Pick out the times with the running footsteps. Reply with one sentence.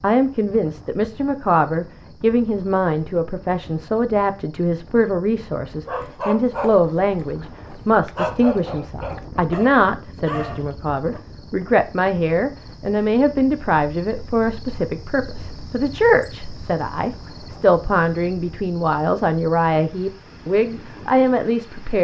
You can't hear the running footsteps here.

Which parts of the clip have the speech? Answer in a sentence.
The speech can be heard from 0.0 to 22.0 s.